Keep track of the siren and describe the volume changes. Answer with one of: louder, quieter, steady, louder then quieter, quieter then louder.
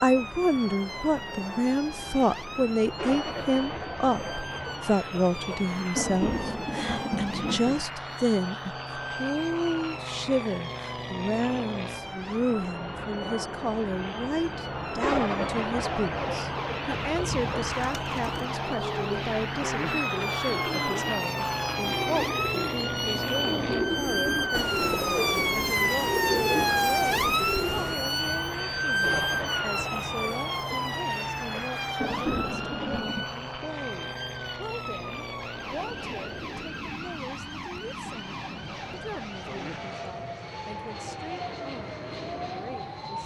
louder then quieter.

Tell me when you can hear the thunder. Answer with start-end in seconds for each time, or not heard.
3.0-7.8, 15.0-17.6, 29.0-33.3.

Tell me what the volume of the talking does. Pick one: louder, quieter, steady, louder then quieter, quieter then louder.
quieter.